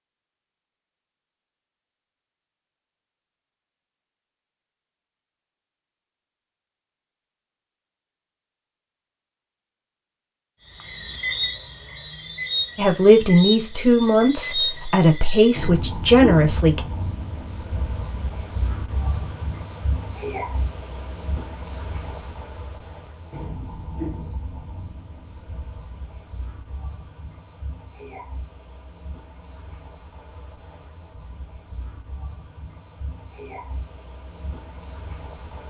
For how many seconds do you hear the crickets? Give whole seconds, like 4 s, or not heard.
25 s.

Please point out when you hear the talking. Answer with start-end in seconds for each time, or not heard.
12.8-16.8.